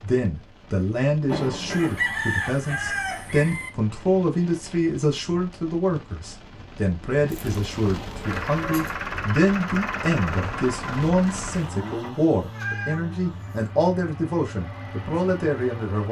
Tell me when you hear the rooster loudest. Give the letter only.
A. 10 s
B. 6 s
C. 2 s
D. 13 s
C.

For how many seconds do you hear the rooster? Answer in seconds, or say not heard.
2 s.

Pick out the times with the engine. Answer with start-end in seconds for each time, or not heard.
8.2-16.0.